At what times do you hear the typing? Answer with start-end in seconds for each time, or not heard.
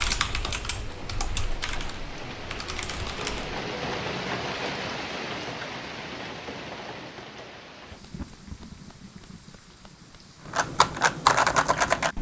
0.0-3.5, 10.4-12.1.